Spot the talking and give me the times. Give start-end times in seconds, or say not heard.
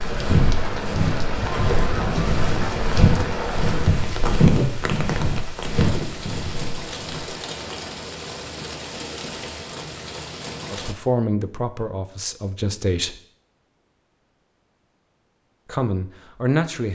10.7-13.2, 15.7-16.9.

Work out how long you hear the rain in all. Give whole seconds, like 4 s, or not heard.
11 s.